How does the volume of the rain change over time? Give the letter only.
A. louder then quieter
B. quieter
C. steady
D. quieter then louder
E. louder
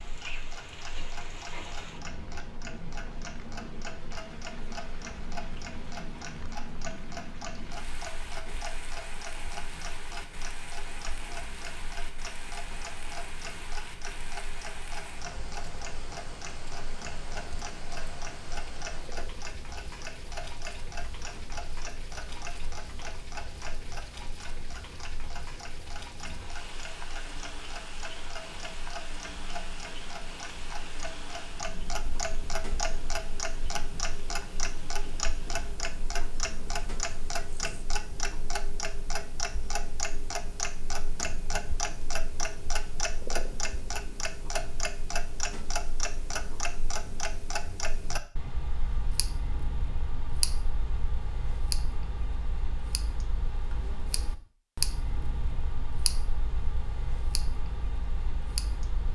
C.